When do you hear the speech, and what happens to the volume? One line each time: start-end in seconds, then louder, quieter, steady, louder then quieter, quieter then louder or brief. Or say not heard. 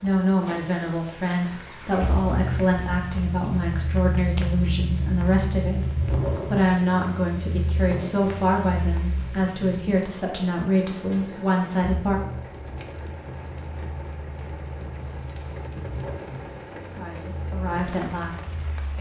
0.0-12.2 steady
16.9-18.9 brief.